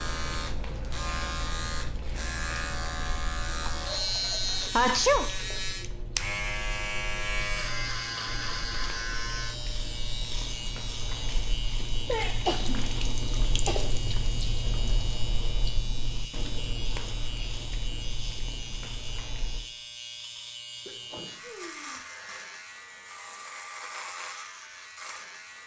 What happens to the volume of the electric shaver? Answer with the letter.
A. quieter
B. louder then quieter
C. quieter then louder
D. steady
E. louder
A.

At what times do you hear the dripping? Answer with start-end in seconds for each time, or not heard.
0.0-19.6.